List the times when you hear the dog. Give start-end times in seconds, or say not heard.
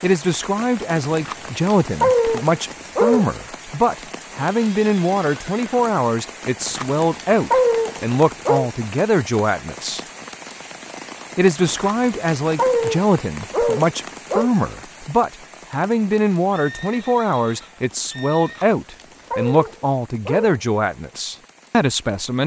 1.1-3.3, 6.6-8.7, 11.7-14.5, 18.4-20.6.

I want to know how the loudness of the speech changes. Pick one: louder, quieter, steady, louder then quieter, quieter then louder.
steady.